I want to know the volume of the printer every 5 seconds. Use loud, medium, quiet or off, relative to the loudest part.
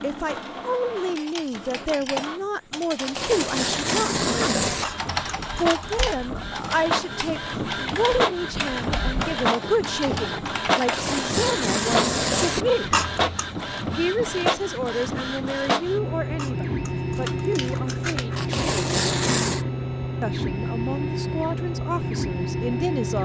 medium, loud, loud, loud, loud.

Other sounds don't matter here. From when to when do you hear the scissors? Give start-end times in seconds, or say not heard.
4.8-6.2, 12.9-13.6, 16.4-18.4.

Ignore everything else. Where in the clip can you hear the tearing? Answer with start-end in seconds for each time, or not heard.
3.0-4.8, 10.8-12.7, 18.4-19.6.